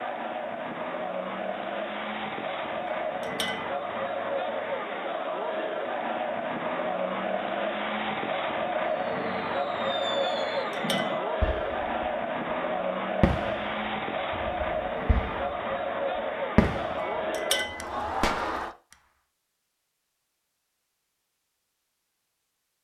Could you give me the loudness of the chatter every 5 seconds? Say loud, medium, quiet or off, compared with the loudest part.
loud, loud, loud, loud, off.